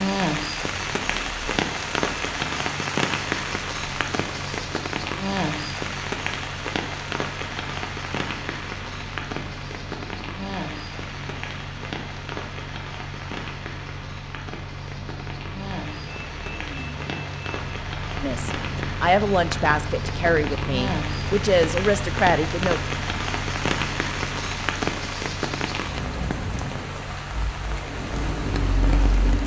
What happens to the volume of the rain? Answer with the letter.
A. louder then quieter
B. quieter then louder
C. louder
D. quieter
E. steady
B.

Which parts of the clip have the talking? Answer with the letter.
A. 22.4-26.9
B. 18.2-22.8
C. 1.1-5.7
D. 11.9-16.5
B.